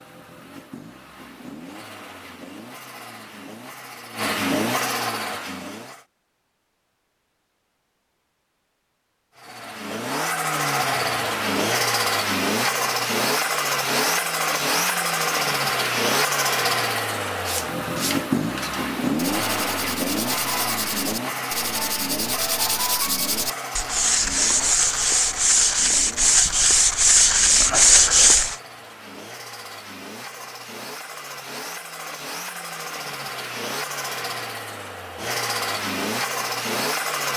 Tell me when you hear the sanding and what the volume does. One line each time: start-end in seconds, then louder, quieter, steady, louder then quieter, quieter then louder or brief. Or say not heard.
17.4-28.6 louder.